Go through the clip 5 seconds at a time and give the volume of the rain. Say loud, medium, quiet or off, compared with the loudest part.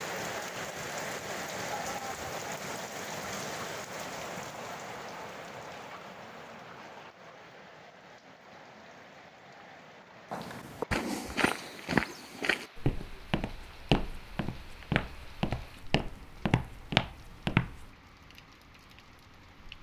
loud, medium, quiet, quiet.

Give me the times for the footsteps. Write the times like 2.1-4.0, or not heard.
10.3-17.9.